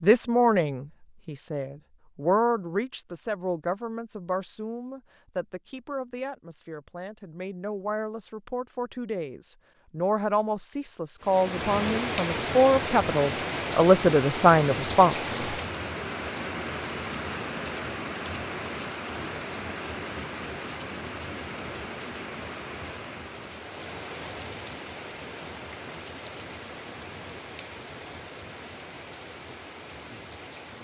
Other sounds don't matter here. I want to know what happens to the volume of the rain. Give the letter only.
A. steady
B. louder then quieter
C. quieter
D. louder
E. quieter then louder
C.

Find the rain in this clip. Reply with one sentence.
You can hear the rain from 11.2 to 30.7 s.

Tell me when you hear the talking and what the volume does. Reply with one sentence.
The talking can be heard from 0.0 to 15.6 s, getting quieter then louder.